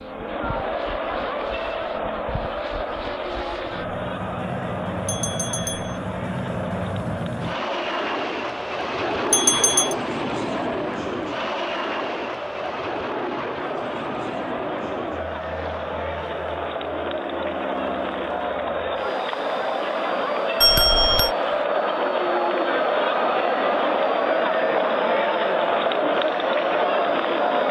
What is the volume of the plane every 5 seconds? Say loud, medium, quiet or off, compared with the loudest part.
medium, loud, loud, medium, quiet, quiet.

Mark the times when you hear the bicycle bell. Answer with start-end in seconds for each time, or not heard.
5.0-6.0, 9.3-9.9, 20.6-21.3.